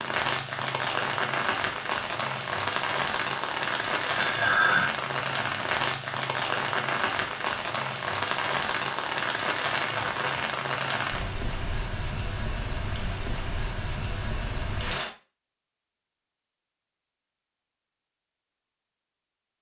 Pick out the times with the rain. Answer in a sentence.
You can hear the rain from 0.0 to 15.1 s.